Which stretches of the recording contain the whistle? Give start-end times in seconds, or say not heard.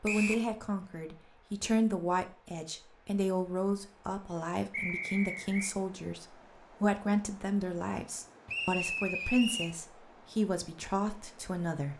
0.1-0.5, 4.7-5.8, 8.4-9.8.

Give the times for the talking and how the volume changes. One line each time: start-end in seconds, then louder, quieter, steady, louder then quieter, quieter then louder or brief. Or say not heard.
0.0-11.9 steady.